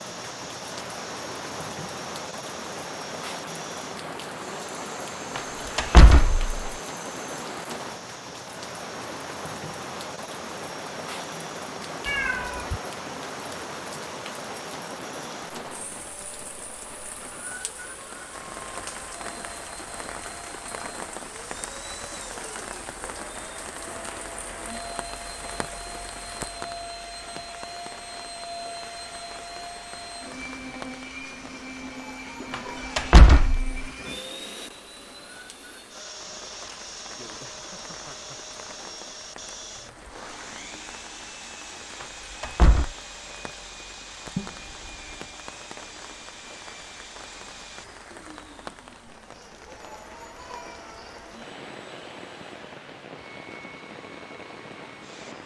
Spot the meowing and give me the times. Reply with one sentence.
The meowing can be heard from 12.1 to 12.8 s and from 44.4 to 45.1 s.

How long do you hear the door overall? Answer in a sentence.
The door can be heard for 3 seconds in total.